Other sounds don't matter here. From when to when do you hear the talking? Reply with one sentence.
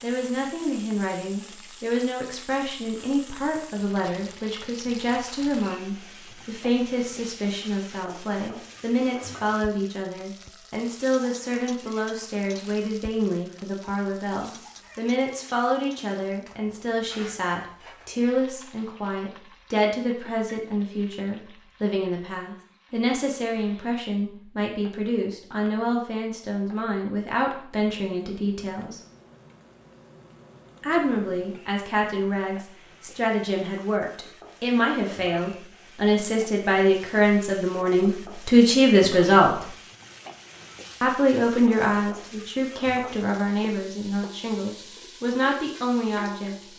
You can hear the talking from 0.0 to 29.0 s, from 30.8 to 39.6 s and from 41.0 to 46.5 s.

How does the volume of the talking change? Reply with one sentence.
The loudness of the talking goes up.